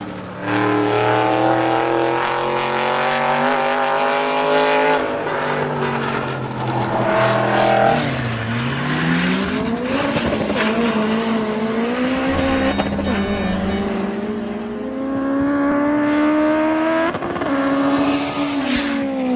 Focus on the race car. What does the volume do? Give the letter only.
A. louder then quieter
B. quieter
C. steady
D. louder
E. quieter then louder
C.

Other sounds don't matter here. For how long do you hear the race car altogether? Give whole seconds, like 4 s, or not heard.
19 s.